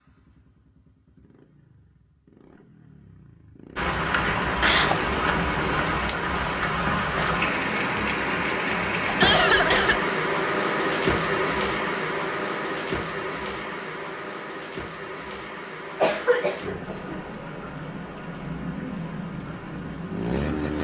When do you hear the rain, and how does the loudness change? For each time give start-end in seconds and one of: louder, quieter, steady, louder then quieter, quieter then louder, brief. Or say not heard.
3.8-20.7 quieter.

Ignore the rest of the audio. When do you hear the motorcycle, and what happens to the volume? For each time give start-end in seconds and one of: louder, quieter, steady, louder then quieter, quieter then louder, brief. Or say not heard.
0.0-6.0 louder
19.3-20.7 brief.